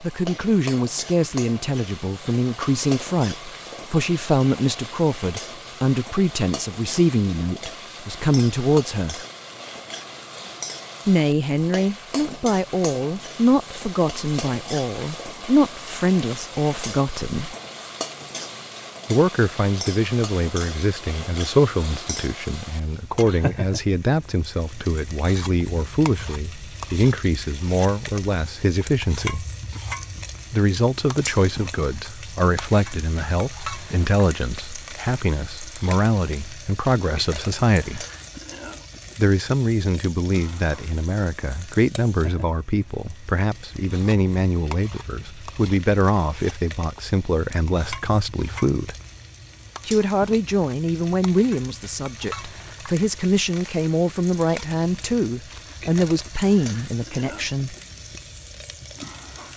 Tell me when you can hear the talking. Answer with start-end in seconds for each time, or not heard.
0.0-9.2, 11.1-17.6, 19.1-29.4, 30.5-38.0, 39.1-49.0, 49.9-57.8.